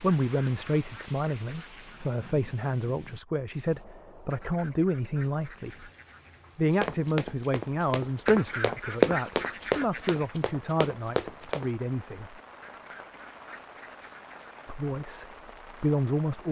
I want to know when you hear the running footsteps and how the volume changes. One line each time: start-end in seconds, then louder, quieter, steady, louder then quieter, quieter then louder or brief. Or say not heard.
6.7-11.7 louder then quieter.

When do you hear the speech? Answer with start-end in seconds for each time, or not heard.
0.0-5.9, 6.5-12.4, 14.7-16.4.